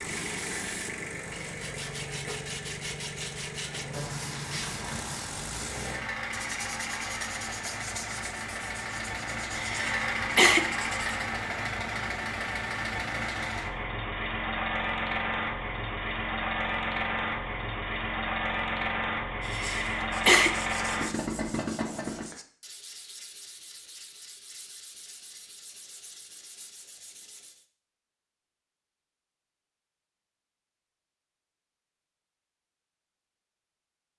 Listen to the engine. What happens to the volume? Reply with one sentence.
The volume of the engine goes up.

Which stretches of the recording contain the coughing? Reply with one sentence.
You can hear the coughing from 9.6 to 10.6 s and from 19.4 to 20.5 s.